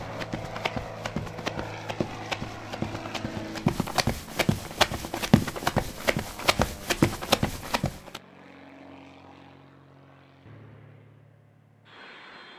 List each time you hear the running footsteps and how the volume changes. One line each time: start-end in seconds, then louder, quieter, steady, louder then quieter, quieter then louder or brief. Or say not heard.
0.0-8.2 louder.